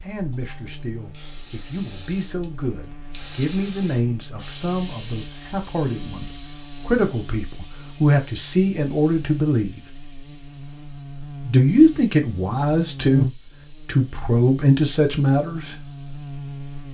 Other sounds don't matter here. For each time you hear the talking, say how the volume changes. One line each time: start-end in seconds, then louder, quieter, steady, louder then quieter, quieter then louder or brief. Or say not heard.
0.0-9.8 louder
11.4-15.8 quieter then louder.